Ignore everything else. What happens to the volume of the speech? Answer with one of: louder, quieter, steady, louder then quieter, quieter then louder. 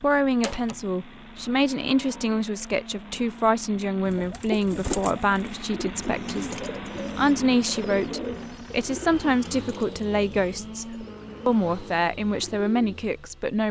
steady.